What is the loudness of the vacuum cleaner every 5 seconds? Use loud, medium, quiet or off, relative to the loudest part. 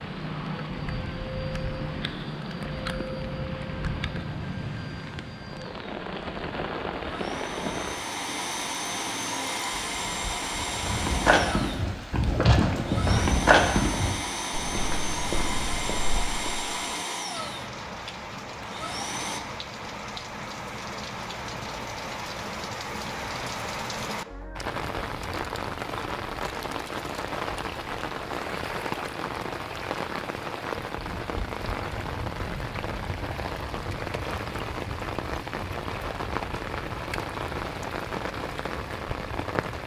medium, loud, loud, loud, off, off, off, off.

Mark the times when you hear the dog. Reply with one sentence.
You can't hear the dog here.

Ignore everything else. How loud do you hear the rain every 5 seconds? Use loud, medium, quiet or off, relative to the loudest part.
loud, loud, medium, medium, loud, loud, loud, loud.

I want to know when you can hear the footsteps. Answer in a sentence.
The footsteps can be heard from 10.7 to 16.6 s.